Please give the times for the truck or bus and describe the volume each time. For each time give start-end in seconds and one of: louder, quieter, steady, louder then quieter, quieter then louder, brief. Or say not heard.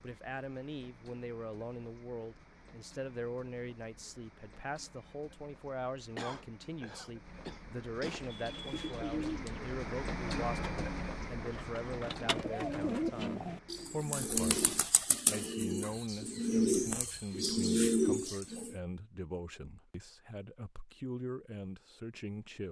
0.0-14.9 louder then quieter.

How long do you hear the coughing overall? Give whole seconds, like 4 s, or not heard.
2 s.